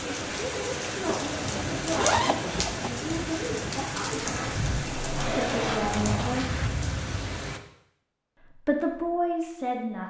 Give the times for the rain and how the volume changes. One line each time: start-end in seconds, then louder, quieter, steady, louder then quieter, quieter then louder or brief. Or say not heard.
0.0-7.6 steady.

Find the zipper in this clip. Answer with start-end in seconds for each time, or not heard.
1.1-2.9, 5.2-6.7.